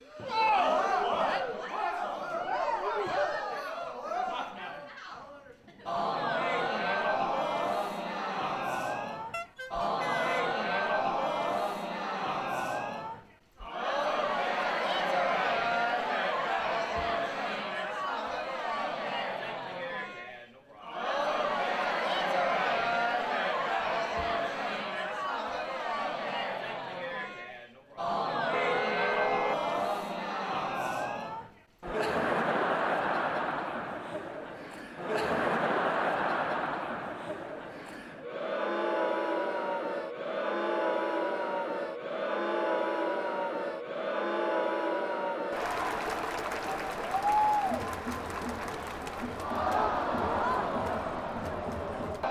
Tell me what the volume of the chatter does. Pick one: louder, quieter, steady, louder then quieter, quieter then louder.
steady.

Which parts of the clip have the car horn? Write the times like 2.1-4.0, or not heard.
9.3-10.5, 28.5-29.6.